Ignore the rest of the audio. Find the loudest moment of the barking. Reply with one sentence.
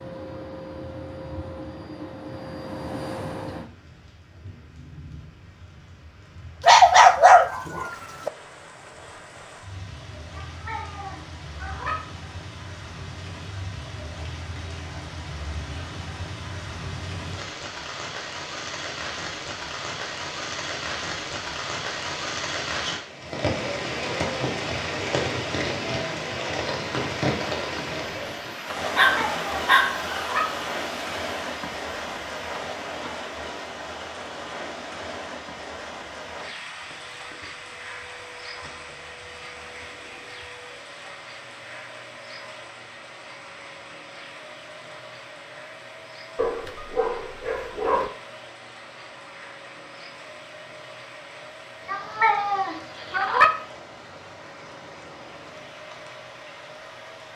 The loudest moment of the barking is at 7 seconds.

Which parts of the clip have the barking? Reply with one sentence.
The barking can be heard from 6.6 to 8.3 s, from 28.9 to 30.0 s and from 46.4 to 48.1 s.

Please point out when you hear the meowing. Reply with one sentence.
The meowing can be heard from 10.3 to 11.9 s, from 29.1 to 30.4 s and from 51.9 to 53.5 s.